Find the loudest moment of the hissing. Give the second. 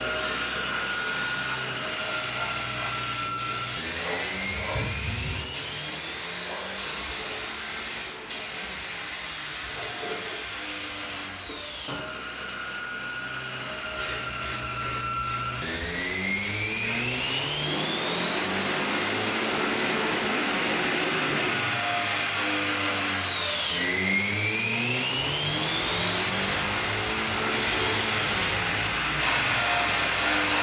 30 s.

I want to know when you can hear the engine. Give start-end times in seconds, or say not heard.
0.0-30.5.